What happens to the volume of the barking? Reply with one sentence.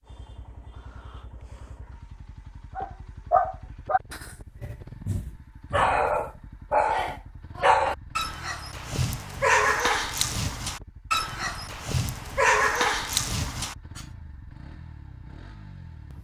The volume of the barking stays about the same.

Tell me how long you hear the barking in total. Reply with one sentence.
You can hear the barking for 11 seconds altogether.